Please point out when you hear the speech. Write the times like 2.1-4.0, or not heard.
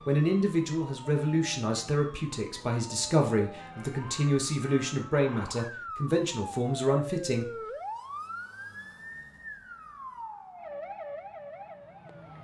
0.1-7.5.